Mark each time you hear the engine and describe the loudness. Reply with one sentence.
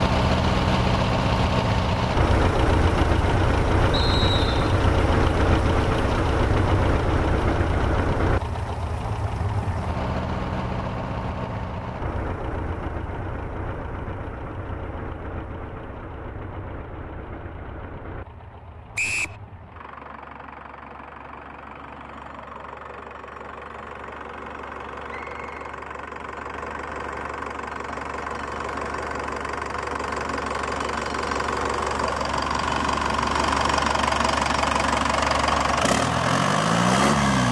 You can hear the engine from 0.0 to 37.4 s, getting quieter then louder.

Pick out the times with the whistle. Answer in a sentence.
The whistle can be heard from 3.9 to 4.8 s, from 18.9 to 19.4 s and from 25.1 to 25.6 s.